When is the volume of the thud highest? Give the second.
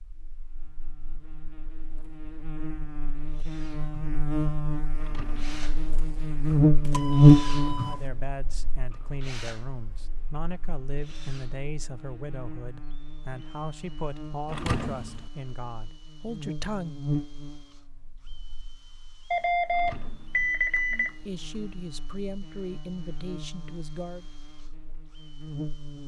15 s.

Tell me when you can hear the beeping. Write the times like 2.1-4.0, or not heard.
6.8-8.0, 19.3-21.1.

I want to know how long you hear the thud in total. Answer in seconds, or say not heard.
2 s.